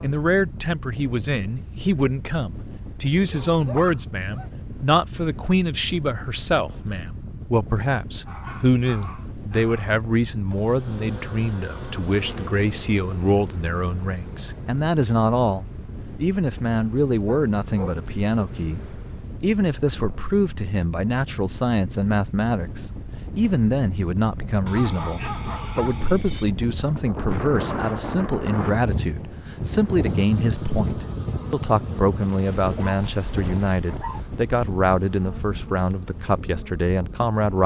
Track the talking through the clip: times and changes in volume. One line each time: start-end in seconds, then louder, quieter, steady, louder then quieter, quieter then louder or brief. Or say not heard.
0.0-37.6 steady.